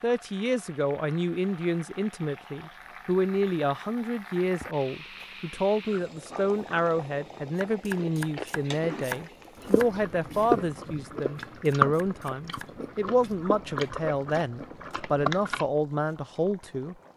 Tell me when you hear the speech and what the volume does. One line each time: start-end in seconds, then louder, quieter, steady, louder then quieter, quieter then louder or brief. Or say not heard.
0.0-16.9 steady.